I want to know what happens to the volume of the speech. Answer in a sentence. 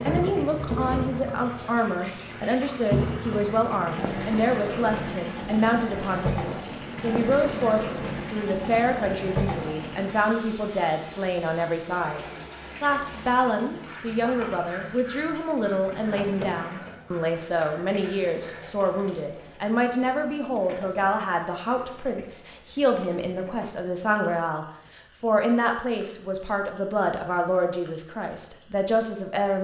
The loudness of the speech stays about the same.